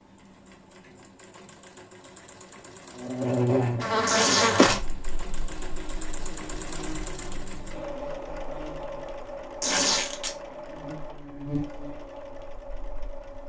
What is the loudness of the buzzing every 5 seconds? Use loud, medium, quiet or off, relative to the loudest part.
loud, quiet, quiet.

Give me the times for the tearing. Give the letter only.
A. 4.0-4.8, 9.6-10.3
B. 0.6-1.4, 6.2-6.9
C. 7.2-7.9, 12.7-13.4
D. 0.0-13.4
A.